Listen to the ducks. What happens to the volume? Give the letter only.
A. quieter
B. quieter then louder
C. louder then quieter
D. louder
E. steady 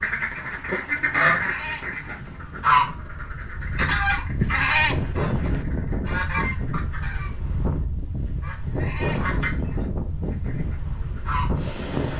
A.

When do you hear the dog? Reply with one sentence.
The dog can't be heard in this clip.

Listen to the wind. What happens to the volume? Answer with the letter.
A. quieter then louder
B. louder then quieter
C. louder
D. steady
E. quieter
C.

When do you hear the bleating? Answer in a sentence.
The bleating can be heard from 1.2 to 2.5 s, from 4.4 to 5.7 s and from 8.7 to 9.9 s.